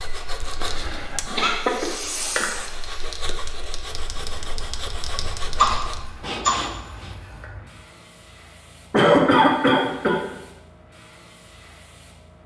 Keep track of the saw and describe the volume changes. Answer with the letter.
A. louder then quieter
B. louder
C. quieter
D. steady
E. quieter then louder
E.